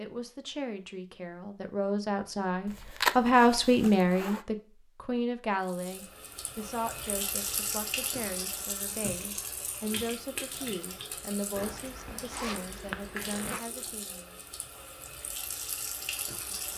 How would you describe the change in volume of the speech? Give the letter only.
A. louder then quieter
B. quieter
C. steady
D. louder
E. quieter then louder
A.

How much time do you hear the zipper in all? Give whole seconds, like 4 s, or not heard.
4 s.